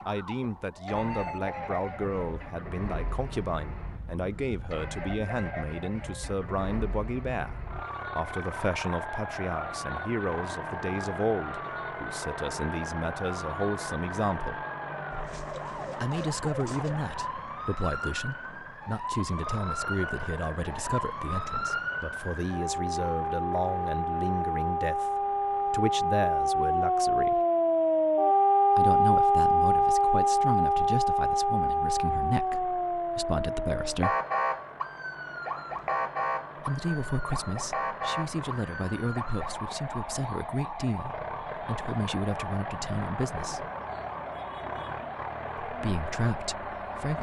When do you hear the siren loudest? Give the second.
29 s.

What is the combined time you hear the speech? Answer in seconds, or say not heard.
40 s.